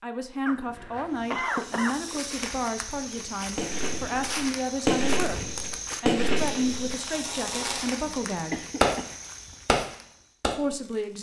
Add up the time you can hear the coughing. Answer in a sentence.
The coughing can be heard for 3 seconds in total.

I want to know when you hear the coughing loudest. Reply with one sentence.
The loudest moment of the coughing is at 1 second.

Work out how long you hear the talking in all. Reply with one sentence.
You can hear the talking for 9 seconds altogether.